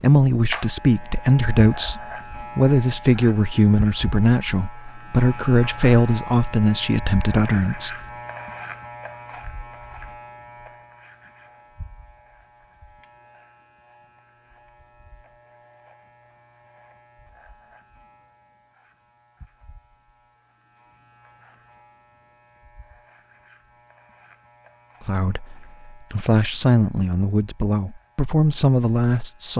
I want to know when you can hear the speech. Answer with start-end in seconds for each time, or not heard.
0.0-8.0, 25.0-29.5.